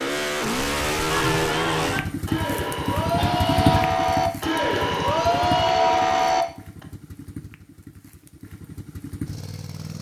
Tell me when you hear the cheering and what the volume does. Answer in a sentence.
You can hear the cheering from 1.1 to 6.8 s, getting louder.